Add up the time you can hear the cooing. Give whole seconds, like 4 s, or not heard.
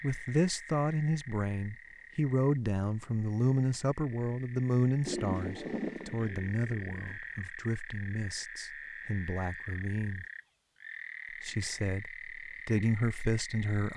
2 s.